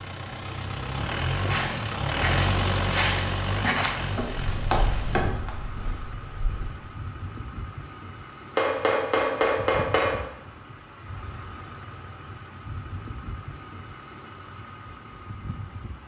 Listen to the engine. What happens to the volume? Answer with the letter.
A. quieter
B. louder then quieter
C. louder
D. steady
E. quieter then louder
A.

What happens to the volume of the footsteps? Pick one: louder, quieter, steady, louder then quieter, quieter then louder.
quieter.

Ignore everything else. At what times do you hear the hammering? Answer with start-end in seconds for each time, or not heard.
3.7-5.5, 8.6-10.2.